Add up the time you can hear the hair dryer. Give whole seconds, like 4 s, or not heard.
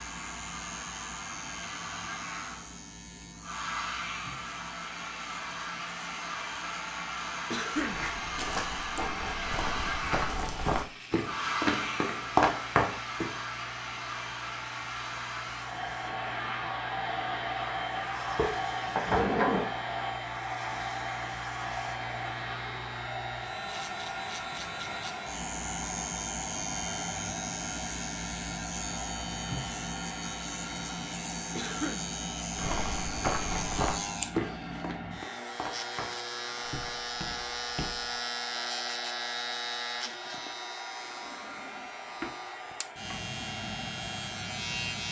45 s.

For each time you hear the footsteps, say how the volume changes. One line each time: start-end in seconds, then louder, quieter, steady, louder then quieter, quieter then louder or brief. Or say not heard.
7.8-13.3 louder
32.5-38.2 quieter.